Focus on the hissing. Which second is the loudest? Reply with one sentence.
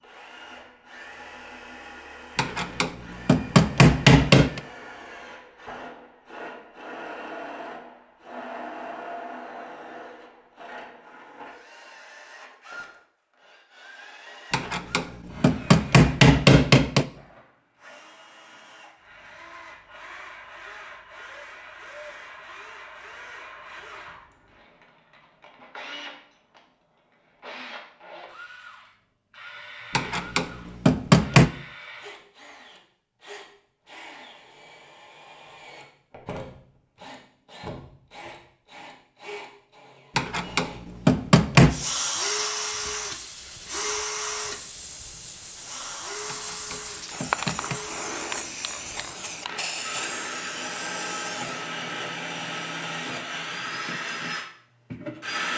The volume of the hissing peaks at 48 seconds.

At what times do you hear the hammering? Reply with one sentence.
You can hear the hammering from 2.4 to 4.6 s, from 14.5 to 17.1 s, from 29.9 to 31.5 s, from 40.1 to 41.8 s and from 46.2 to 47.8 s.